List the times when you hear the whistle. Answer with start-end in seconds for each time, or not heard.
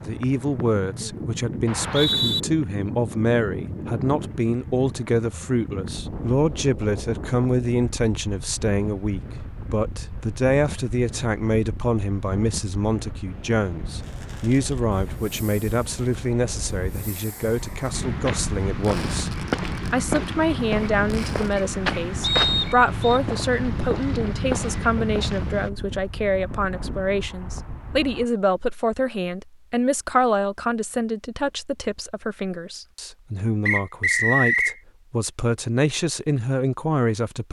1.6-2.4, 22.2-23.2, 33.6-34.8.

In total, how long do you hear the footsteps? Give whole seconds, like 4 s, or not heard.
8 s.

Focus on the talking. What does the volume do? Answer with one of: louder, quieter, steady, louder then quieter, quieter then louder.
steady.